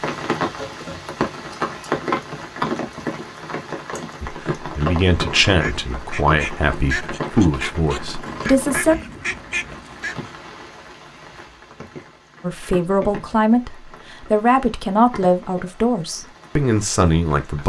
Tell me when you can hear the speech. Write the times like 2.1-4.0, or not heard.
4.2-8.9, 12.4-17.6.